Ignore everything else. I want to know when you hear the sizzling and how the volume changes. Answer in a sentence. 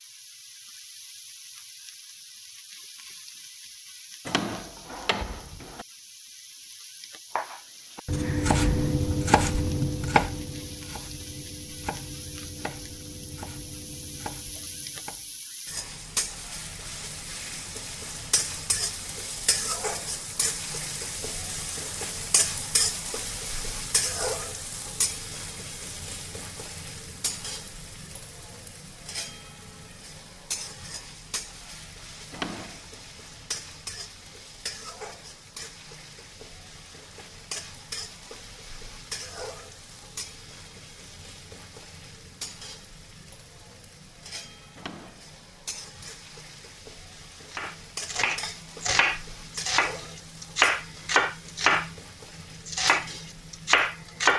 The sizzling can be heard from 0.0 to 54.3 s, getting louder then quieter.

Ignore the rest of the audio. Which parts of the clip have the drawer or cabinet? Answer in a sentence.
The drawer or cabinet can be heard from 4.2 to 5.8 s, from 32.3 to 32.9 s and from 44.8 to 45.3 s.